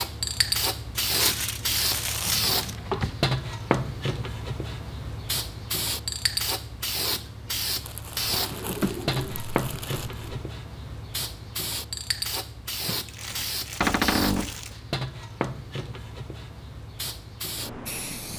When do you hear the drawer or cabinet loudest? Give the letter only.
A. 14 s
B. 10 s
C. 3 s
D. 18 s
A.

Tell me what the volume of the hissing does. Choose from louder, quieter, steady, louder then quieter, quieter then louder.
quieter.